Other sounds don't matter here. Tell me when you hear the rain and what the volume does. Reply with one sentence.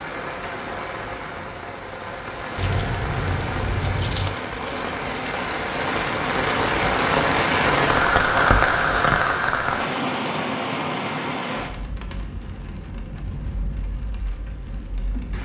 You can hear the rain from 0.0 to 15.3 s, getting louder then quieter.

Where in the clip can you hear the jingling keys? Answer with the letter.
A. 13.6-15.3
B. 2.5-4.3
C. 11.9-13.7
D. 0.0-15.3
B.